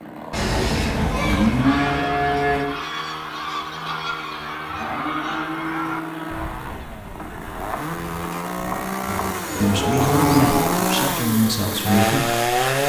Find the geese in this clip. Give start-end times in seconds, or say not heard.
1.6-8.9.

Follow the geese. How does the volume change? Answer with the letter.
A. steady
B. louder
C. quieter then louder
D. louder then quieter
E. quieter
E.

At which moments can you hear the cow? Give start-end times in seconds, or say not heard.
0.3-2.6, 4.7-6.7, 9.0-10.7.